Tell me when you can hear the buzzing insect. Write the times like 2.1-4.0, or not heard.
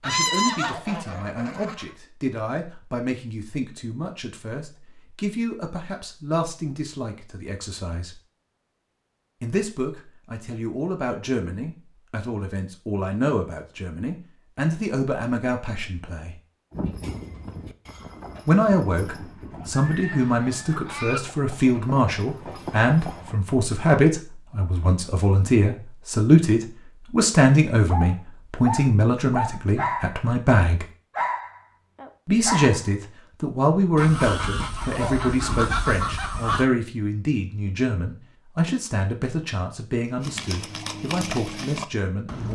not heard.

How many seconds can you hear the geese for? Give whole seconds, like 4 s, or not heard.
6 s.